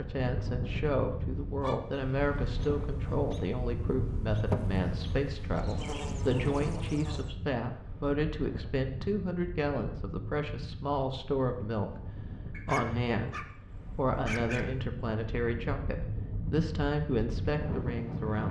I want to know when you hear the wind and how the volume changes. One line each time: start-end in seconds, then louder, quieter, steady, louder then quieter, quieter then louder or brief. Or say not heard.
0.0-18.4 quieter then louder.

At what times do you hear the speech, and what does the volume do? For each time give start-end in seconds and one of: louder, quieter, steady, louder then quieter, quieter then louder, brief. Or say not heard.
0.0-18.4 steady.